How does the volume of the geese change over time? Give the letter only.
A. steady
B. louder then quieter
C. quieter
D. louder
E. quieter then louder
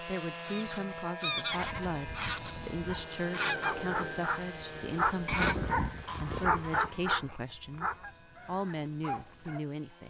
C.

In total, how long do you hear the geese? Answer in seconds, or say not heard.
9 s.